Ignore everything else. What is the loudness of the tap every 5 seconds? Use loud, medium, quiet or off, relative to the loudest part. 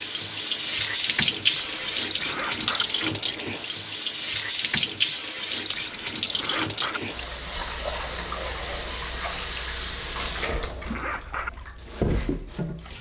loud, loud, medium.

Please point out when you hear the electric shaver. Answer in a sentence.
You can't hear the electric shaver here.